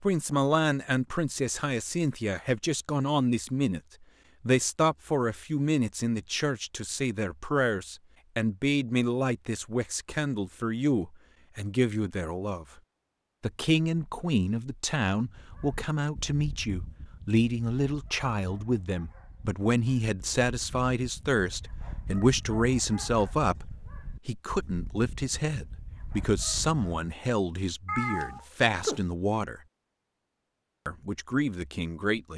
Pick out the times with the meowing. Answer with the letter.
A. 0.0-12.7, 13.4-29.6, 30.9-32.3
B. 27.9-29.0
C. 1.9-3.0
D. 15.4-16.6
B.